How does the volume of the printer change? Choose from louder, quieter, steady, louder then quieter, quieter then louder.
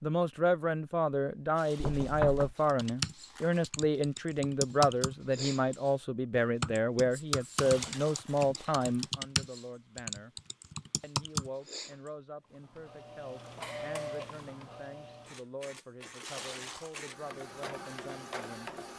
quieter then louder.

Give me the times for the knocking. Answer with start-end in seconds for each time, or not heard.
1.8-2.5.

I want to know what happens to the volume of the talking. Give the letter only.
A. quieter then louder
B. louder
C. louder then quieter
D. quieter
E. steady
D.